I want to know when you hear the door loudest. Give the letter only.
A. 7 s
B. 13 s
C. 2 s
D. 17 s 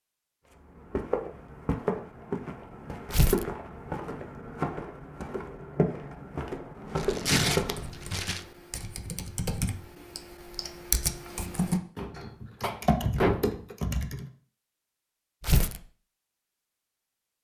B.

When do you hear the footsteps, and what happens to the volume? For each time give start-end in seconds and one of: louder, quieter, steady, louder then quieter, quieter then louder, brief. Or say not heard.
0.5-7.9 steady.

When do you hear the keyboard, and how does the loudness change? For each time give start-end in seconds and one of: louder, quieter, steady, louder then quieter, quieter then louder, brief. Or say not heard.
7.6-14.2 louder.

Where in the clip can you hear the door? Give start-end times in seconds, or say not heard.
11.9-13.6.